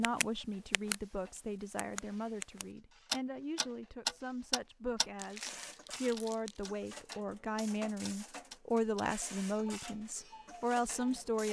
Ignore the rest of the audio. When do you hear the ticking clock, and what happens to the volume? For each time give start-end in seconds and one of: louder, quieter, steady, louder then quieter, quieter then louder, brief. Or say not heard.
0.0-0.9 brief
1.8-11.2 quieter.